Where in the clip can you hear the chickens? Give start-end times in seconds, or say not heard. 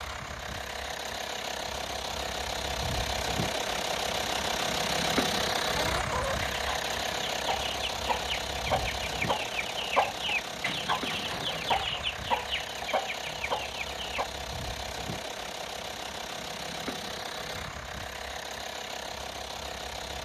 5.7-14.3.